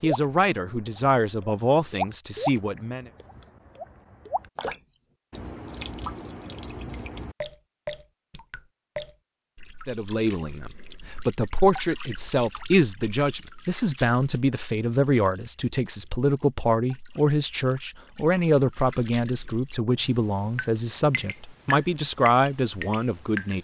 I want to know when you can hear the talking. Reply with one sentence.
The talking can be heard from 0.0 to 3.1 s and from 9.8 to 23.6 s.